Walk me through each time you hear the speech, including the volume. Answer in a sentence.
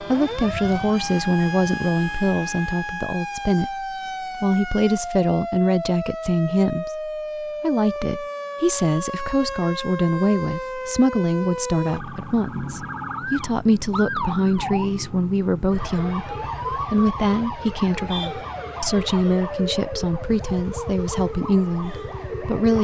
You can hear the speech from 0.0 to 22.7 s, at a steady volume.